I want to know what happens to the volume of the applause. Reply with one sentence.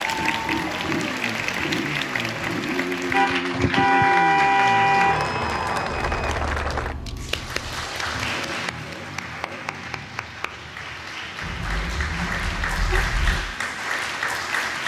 The loudness of the applause goes down, then up.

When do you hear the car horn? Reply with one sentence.
The car horn can be heard from 3.1 to 5.2 s and from 11.4 to 13.4 s.